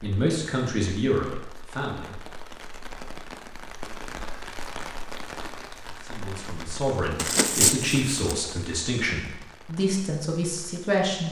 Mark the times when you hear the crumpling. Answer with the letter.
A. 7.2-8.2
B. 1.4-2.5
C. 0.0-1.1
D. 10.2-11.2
A.